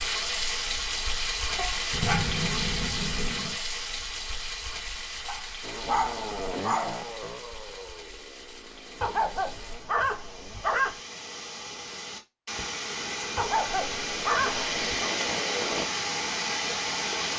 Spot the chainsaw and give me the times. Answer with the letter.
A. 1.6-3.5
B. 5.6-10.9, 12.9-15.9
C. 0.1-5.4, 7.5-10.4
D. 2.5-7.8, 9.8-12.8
B.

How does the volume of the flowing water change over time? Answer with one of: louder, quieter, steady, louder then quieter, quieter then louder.
quieter then louder.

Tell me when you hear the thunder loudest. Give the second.
2 s.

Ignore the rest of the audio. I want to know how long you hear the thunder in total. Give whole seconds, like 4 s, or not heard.
2 s.